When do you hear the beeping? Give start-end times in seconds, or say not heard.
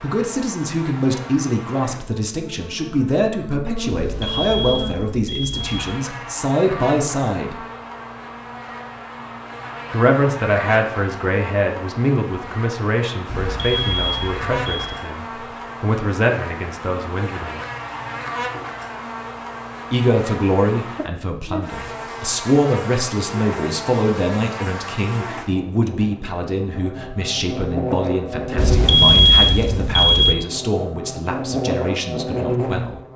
3.9-5.8, 13.2-15.0, 28.6-30.4.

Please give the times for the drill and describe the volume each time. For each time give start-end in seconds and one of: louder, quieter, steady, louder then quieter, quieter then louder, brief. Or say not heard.
not heard.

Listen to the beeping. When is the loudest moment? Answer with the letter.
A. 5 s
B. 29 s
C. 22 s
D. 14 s
B.